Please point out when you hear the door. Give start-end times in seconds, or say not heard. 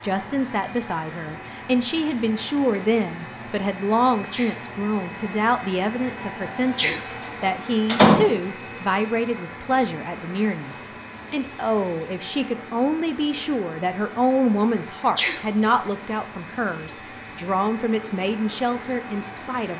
7.1-8.2.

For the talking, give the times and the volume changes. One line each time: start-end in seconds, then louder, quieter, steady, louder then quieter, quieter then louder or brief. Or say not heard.
0.0-19.7 steady.